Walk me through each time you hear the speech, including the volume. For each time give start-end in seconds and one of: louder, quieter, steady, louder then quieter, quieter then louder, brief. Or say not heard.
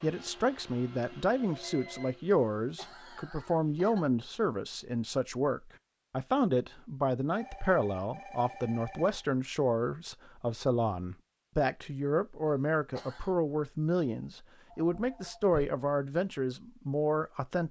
0.0-17.6 steady.